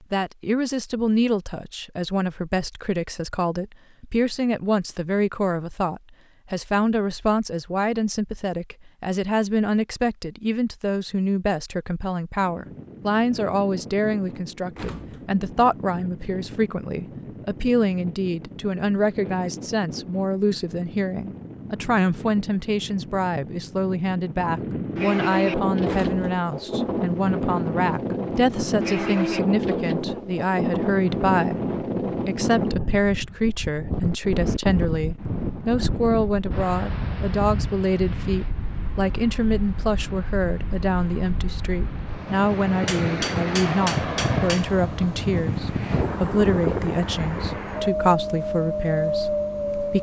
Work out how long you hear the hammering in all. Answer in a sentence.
You can hear the hammering for 2 seconds altogether.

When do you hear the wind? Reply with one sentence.
The wind can be heard from 12.4 to 49.9 s.